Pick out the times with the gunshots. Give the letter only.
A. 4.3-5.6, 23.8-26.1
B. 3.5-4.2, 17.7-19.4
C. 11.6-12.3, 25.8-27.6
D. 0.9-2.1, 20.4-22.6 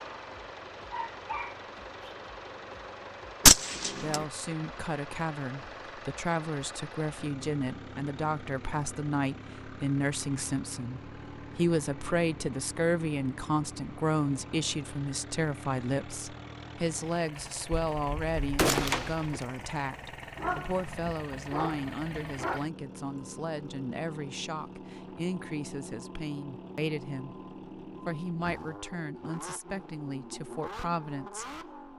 B.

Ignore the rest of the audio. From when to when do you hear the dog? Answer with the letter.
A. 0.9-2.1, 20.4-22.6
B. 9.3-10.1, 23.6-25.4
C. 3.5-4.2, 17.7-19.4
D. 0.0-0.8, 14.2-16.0
A.